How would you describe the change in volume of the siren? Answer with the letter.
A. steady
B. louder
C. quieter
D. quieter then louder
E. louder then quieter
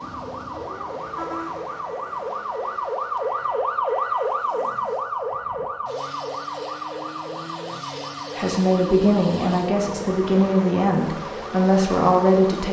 E.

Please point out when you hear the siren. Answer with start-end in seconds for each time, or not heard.
0.0-12.6.